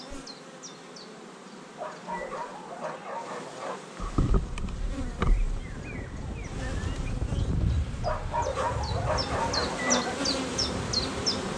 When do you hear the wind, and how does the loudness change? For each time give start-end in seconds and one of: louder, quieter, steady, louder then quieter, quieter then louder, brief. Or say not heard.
4.3-11.5 louder then quieter.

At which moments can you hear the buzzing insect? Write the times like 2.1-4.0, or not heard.
0.0-11.5.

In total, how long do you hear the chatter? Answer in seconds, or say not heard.
not heard.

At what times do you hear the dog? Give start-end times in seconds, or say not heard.
1.8-3.8, 8.0-10.1.